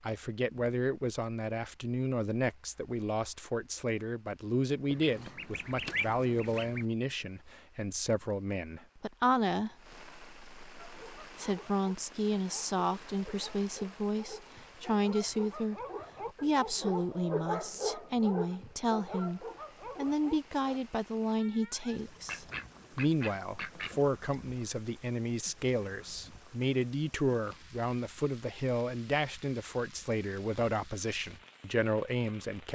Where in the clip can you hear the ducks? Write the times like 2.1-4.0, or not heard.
4.9-6.8, 22.2-24.0.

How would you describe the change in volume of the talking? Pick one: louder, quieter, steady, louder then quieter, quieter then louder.
steady.